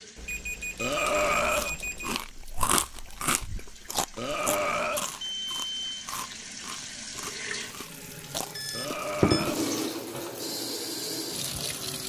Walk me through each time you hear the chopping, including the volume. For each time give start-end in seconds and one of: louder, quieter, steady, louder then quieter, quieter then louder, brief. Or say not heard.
not heard.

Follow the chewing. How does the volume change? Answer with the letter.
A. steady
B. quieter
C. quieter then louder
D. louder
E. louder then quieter
B.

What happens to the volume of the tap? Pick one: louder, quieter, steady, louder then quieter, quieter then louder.
louder.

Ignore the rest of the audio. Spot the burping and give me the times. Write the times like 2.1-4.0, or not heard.
0.8-1.8, 4.2-5.1, 8.7-9.7.